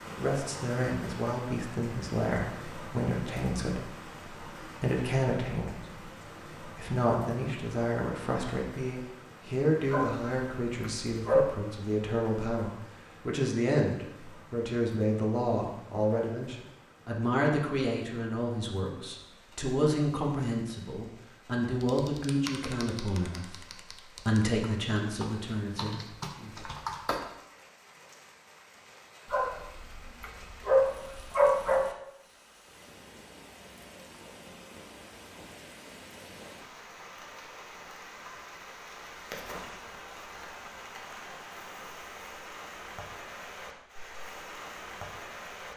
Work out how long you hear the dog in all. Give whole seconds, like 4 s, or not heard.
4 s.